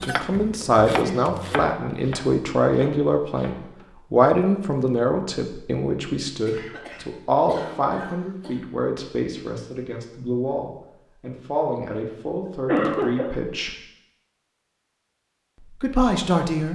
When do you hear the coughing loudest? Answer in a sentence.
The volume of the coughing peaks at 13 seconds.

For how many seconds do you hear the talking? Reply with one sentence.
The talking can be heard for 15 seconds in total.